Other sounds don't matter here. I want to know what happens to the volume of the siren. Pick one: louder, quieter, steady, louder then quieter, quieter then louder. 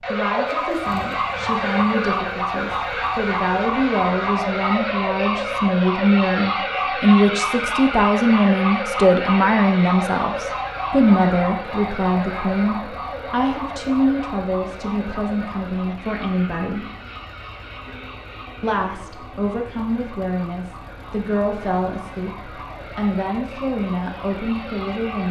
quieter.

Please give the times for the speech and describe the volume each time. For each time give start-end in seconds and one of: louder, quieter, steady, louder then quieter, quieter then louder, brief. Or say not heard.
0.1-16.9 louder then quieter
18.6-25.2 steady.